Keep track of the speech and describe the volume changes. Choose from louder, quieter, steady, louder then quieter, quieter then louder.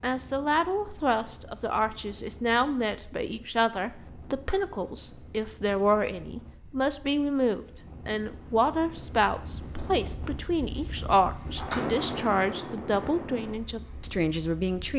steady.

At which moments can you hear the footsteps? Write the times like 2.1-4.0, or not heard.
not heard.